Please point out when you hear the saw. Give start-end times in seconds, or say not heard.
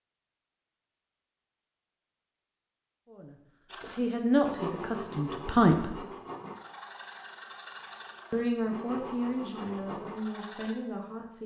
3.6-10.8.